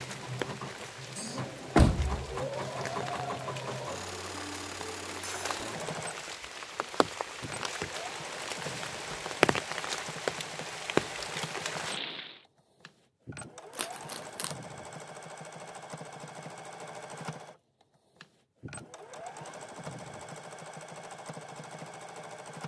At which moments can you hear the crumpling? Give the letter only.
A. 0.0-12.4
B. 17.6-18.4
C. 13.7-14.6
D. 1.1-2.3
C.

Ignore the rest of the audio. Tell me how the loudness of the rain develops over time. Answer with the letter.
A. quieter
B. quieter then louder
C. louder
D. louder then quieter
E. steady
C.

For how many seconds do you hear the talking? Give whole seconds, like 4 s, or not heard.
not heard.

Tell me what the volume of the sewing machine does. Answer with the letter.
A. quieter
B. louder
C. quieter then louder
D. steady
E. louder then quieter
A.